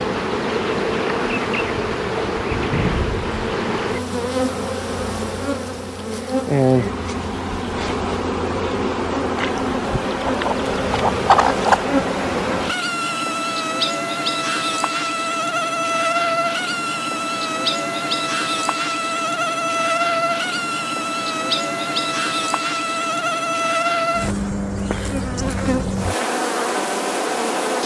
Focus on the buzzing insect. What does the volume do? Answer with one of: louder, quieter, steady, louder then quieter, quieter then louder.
steady.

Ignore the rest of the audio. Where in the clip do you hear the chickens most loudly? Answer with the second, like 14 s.
11 s.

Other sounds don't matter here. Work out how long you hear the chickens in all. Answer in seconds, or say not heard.
2 s.